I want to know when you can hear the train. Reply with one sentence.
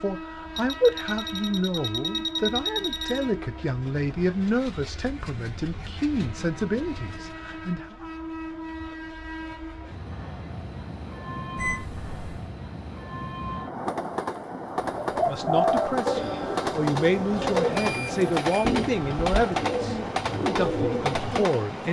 You can hear the train from 0.0 to 21.8 s.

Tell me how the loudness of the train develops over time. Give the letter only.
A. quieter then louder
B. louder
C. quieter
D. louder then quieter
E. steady
B.